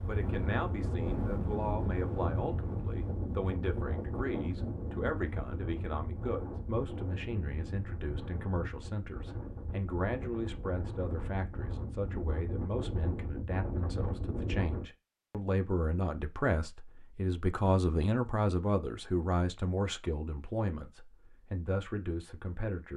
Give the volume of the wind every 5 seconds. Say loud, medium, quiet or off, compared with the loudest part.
loud, medium, loud, off, off.